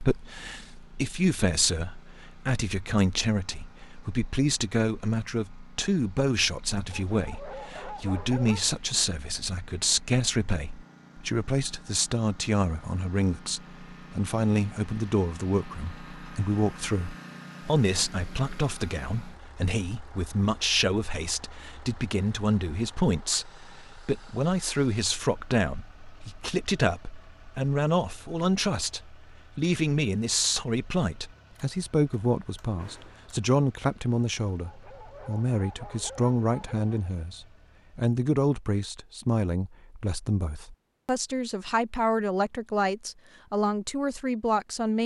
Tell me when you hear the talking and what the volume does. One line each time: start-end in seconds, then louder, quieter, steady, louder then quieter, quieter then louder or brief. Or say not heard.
0.0-45.0 steady.